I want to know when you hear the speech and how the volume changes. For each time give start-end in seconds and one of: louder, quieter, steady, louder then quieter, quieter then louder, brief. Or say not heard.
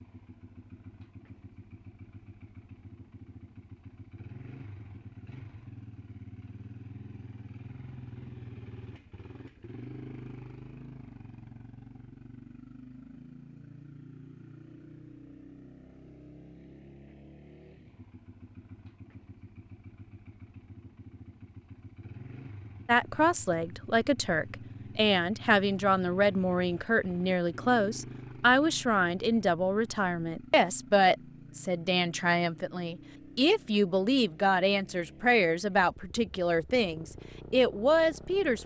22.9-38.6 steady.